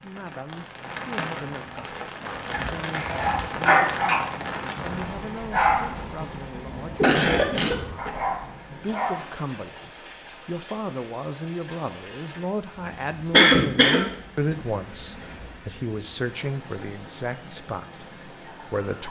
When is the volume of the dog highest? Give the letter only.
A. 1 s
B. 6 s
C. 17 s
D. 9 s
B.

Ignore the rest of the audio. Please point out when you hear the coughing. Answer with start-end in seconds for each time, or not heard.
2.5-4.2, 6.5-8.1, 13.3-14.0.